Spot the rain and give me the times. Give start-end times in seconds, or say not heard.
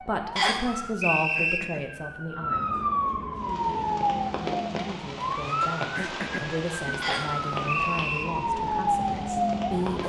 3.4-10.0.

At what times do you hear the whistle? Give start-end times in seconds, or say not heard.
0.3-1.6, 7.0-8.2.